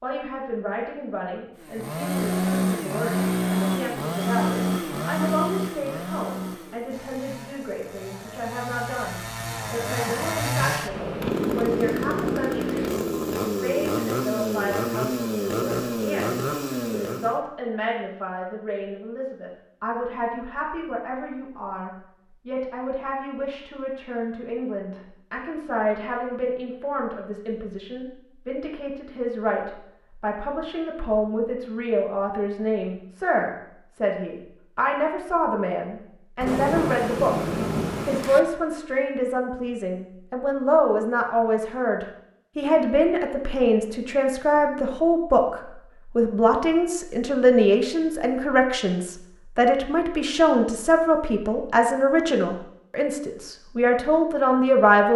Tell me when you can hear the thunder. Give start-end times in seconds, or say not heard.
10.8-12.9, 36.4-38.4.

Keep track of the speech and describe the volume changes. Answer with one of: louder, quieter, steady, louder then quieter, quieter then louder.
louder.